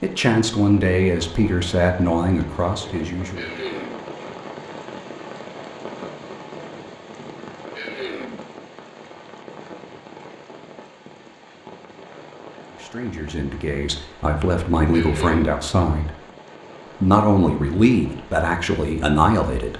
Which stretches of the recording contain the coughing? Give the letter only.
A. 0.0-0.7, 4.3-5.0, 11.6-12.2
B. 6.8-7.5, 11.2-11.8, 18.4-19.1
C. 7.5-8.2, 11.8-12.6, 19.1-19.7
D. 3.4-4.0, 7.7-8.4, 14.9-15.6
D.